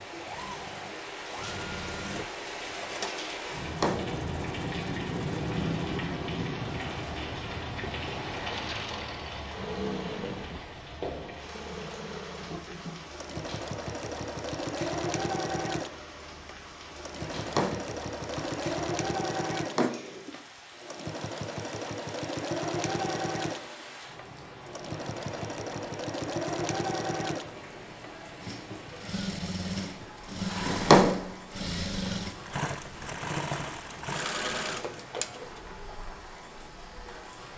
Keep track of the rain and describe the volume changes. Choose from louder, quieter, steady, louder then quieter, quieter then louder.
quieter.